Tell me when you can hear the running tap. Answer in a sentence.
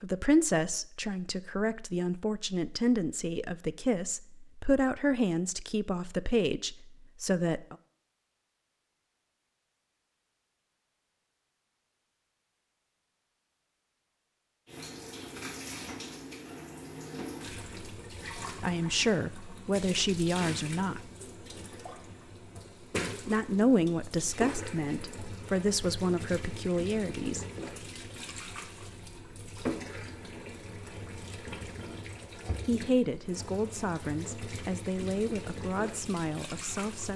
The running tap can be heard from 14.7 to 37.1 s.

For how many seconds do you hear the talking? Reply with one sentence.
The talking can be heard for 19 seconds in total.